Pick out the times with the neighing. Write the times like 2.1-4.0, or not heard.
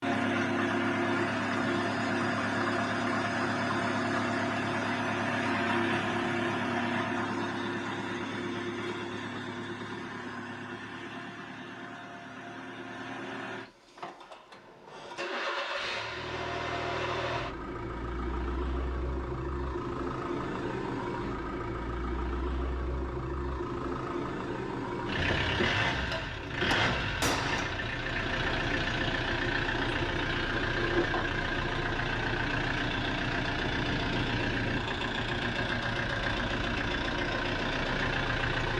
not heard.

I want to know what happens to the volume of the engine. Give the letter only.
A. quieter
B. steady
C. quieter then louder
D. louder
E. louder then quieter
C.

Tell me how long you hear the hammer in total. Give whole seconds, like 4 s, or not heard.
2 s.